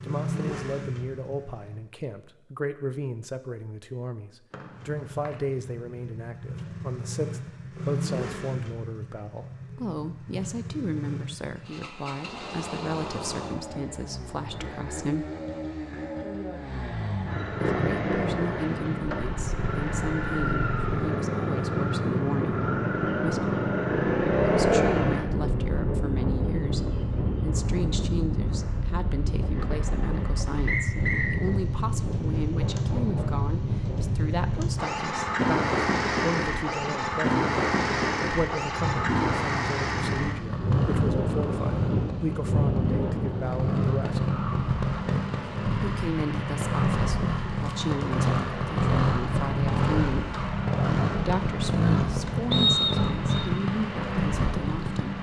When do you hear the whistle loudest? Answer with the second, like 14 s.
53 s.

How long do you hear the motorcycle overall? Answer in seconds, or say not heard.
52 s.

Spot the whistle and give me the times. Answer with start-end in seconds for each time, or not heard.
4.5-5.4, 30.6-31.4, 52.5-53.5.